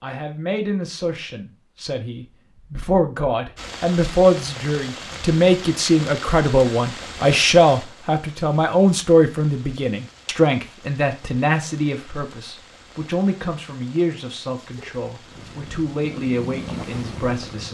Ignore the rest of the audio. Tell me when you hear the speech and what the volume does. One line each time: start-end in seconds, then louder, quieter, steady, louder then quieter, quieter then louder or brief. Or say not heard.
0.0-17.7 louder then quieter.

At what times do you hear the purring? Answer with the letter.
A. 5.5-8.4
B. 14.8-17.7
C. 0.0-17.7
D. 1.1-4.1
B.